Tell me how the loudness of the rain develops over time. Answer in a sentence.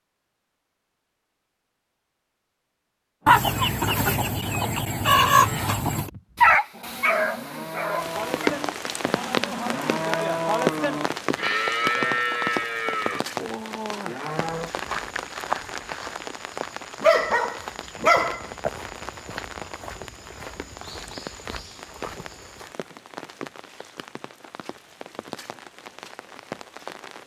The volume of the rain goes down.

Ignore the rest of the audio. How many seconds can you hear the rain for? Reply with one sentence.
You can hear the rain for 19 seconds altogether.